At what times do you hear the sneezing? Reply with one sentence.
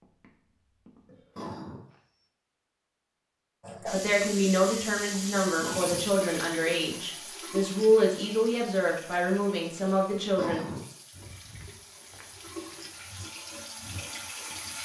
The sneezing can be heard from 1.1 to 1.9 s, from 5.4 to 6.1 s and from 10.1 to 10.9 s.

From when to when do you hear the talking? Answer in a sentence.
You can hear the talking from 3.9 to 10.6 s.